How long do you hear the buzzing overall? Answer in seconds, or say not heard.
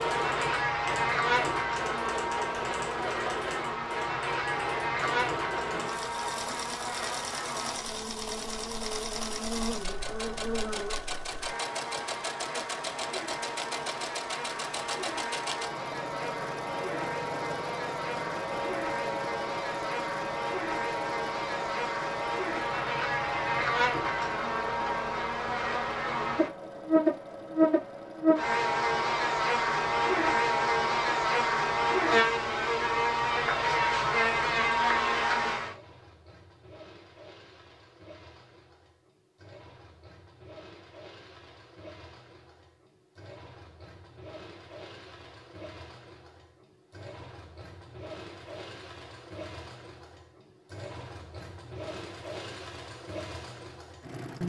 36 s.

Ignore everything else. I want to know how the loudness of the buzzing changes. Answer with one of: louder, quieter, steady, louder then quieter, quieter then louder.
quieter then louder.